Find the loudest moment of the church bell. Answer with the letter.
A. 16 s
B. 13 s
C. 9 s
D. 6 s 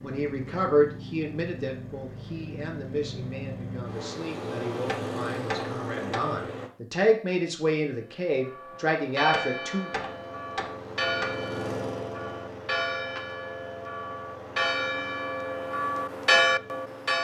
A.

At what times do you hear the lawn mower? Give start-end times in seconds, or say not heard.
0.0-6.7, 9.8-17.1.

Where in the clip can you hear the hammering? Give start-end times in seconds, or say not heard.
4.8-6.4, 9.3-11.3.